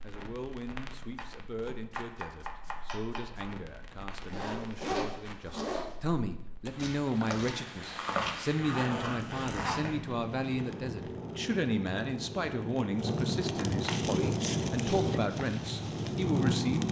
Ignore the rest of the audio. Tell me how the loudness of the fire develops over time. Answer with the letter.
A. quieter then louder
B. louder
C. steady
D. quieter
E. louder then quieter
B.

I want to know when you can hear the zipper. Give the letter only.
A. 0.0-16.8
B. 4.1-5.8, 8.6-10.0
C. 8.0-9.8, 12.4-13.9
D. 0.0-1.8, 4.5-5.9
B.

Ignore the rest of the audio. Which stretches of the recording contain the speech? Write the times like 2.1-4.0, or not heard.
0.0-16.8.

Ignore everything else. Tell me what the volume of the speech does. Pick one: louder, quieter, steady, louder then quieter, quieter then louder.
louder.